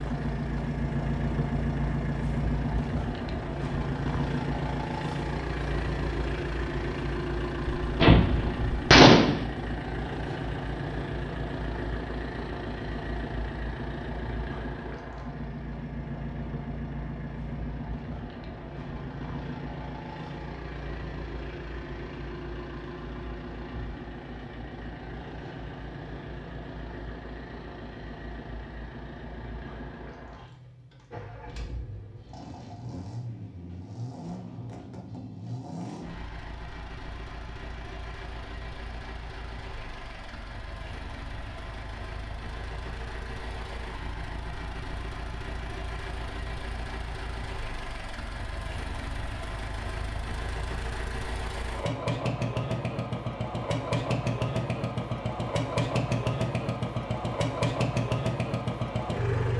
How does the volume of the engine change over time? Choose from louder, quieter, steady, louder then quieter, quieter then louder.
quieter then louder.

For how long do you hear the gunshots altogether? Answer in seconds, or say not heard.
2 s.